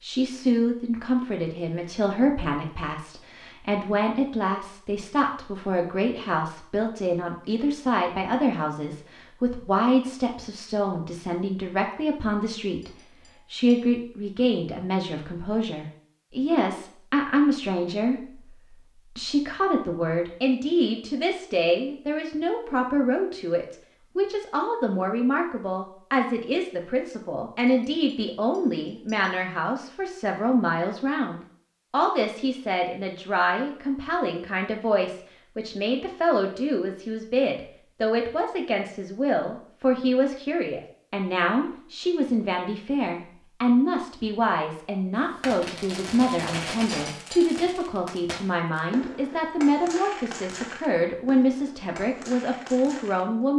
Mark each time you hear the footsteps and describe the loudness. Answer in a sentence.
You can't hear the footsteps here.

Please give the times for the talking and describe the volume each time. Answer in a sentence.
You can hear the talking from 0.0 to 53.5 s, at a steady volume.